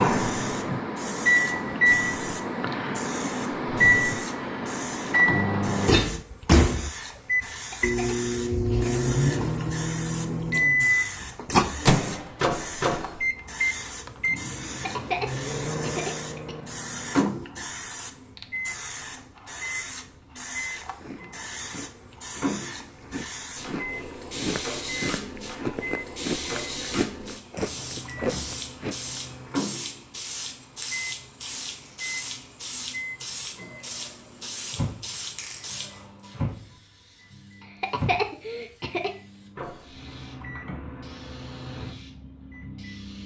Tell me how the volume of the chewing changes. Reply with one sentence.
The loudness of the chewing goes up.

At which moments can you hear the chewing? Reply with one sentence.
You can hear the chewing from 20.9 to 29.2 s.